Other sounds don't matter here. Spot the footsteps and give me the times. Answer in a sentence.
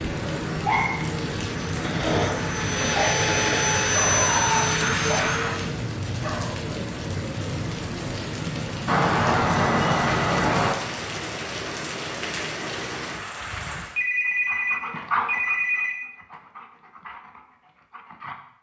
You can't hear the footsteps here.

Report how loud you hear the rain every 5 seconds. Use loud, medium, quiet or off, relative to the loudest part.
loud, loud, loud, off.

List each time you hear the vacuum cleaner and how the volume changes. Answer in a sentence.
The vacuum cleaner can be heard from 0.1 to 5.8 s, getting louder.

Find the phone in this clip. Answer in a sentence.
You can hear the phone from 2.7 to 4.3 s, from 8.8 to 10.8 s and from 13.9 to 15.9 s.